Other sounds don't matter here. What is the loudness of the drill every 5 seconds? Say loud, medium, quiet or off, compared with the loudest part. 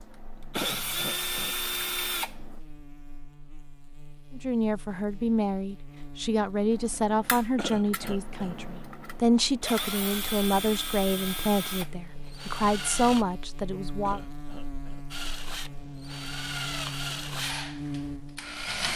loud, medium, loud, loud.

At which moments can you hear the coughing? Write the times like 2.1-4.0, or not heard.
0.6-1.6, 7.5-8.6, 14.1-15.1.